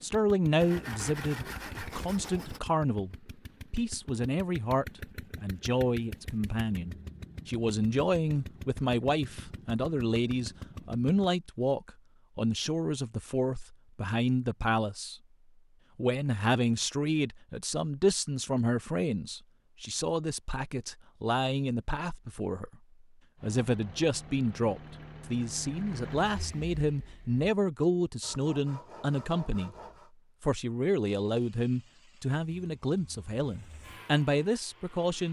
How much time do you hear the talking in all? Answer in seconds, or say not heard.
33 s.